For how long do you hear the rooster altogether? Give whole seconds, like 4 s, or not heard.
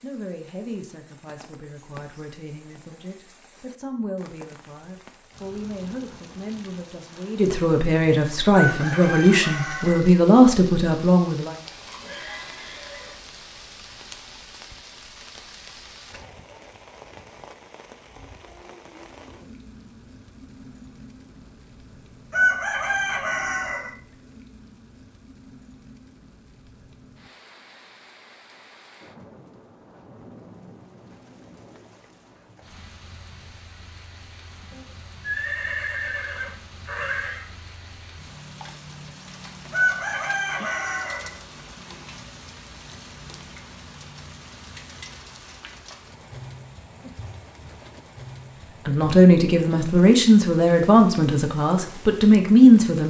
5 s.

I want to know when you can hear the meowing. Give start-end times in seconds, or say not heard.
not heard.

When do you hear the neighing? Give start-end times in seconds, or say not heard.
11.6-13.2, 34.7-37.5.